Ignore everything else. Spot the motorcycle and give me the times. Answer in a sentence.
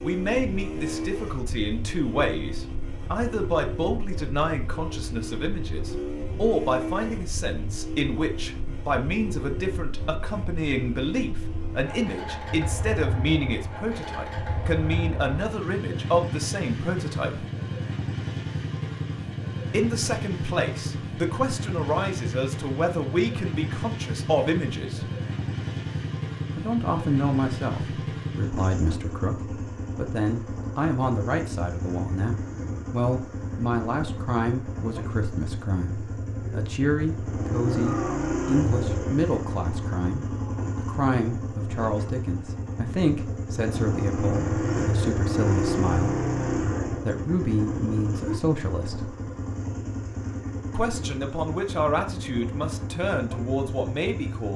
You can hear the motorcycle from 0.0 to 54.5 s.